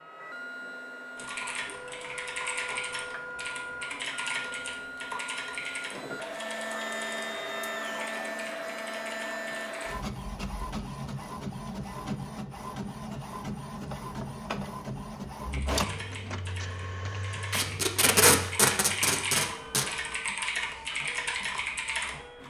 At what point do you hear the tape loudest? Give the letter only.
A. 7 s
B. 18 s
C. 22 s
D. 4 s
B.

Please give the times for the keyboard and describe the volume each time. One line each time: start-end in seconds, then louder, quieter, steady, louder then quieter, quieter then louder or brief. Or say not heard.
1.1-9.9 quieter
15.5-22.4 louder.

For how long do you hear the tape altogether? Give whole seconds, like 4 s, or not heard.
2 s.